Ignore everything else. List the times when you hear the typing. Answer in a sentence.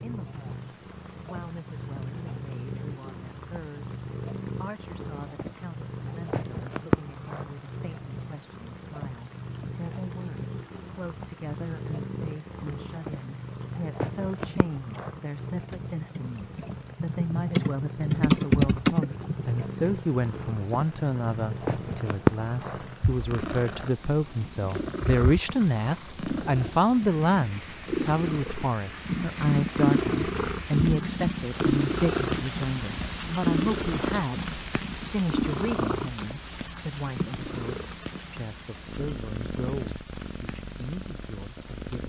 The typing can be heard from 14.4 to 19.4 s.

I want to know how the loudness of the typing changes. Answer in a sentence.
The loudness of the typing goes up.